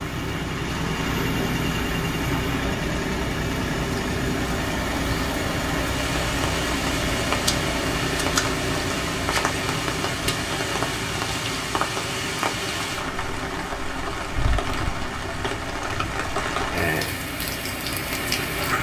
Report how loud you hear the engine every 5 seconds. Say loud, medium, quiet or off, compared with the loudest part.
loud, loud, medium, medium.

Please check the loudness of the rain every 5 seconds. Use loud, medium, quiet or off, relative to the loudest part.
medium, loud, loud, loud.